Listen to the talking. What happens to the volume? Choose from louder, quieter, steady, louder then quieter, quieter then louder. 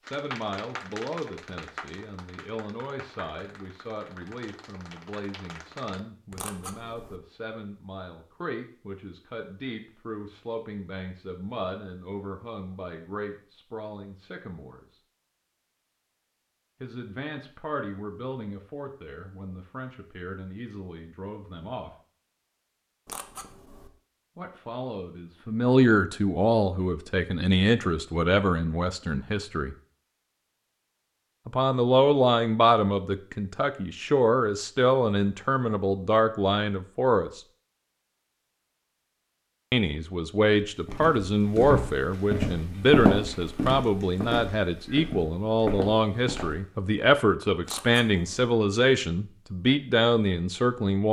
louder.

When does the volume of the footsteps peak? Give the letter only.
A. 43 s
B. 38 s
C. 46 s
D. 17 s
A.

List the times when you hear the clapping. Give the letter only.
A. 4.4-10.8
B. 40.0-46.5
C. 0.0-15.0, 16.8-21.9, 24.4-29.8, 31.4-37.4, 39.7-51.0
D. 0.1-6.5
D.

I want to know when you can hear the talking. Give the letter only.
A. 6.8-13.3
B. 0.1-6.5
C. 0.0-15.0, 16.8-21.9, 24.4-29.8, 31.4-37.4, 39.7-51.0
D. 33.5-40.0
C.